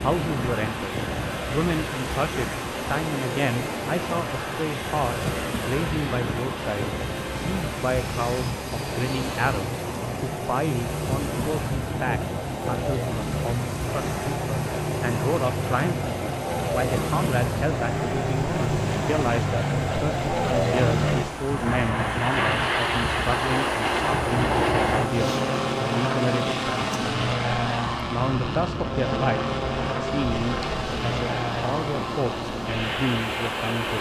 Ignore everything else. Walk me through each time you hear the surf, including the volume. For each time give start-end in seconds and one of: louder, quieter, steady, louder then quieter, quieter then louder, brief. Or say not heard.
0.0-33.9 steady.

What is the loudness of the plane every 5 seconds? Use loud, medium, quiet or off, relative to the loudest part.
medium, medium, medium, loud, loud, loud, medium.